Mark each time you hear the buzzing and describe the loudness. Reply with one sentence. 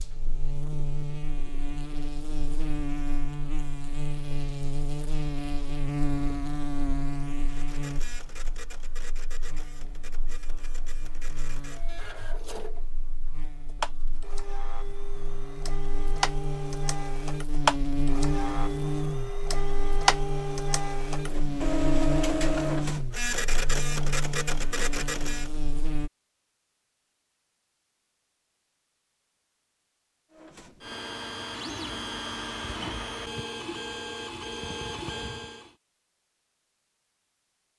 You can hear the buzzing from 0.0 to 26.1 s, getting quieter then louder.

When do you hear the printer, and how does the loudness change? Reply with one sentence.
The printer can be heard from 7.5 to 25.5 s, getting louder; and from 30.3 to 35.8 s, at a steady volume.